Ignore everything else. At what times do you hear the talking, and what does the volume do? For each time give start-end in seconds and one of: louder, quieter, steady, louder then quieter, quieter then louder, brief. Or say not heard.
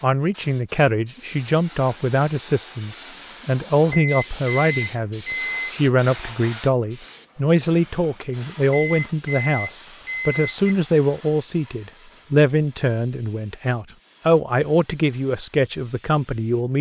0.0-16.7 steady.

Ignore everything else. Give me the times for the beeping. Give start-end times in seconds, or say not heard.
3.9-5.8, 8.7-10.8.